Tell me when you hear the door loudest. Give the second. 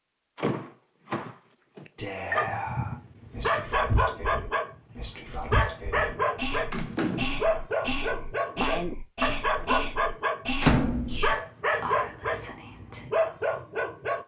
11 s.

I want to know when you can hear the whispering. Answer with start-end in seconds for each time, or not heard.
1.9-13.1.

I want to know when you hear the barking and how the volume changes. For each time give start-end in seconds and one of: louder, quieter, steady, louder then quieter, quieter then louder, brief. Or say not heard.
2.4-14.2 steady.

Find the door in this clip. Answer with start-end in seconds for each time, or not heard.
0.3-2.4, 6.7-7.5, 10.6-11.2.